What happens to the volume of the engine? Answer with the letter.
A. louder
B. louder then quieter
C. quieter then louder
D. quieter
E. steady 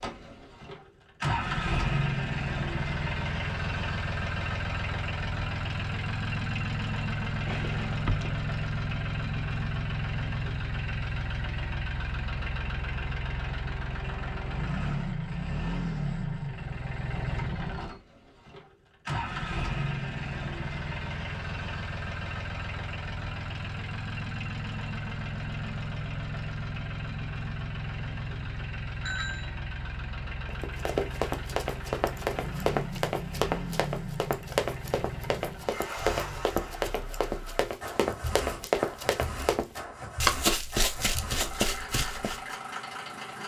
D.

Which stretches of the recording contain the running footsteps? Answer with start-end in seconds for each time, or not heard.
30.4-42.5.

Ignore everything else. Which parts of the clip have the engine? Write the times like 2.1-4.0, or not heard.
0.0-43.4.